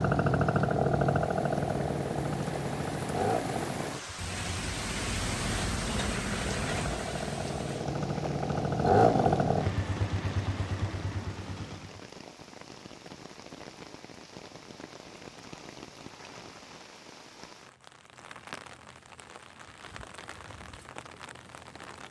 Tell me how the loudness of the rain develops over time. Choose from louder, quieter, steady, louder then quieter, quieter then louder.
quieter.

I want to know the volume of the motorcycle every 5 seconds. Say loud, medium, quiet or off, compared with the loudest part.
loud, loud, medium, off, off.